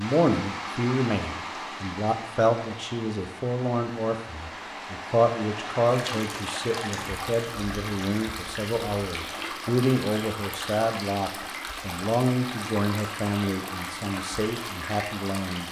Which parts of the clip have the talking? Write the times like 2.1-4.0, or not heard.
0.0-15.6.